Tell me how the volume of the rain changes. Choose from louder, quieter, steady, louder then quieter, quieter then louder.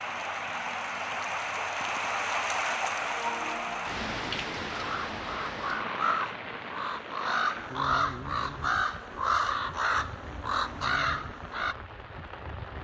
quieter.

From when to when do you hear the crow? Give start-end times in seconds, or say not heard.
4.7-11.8.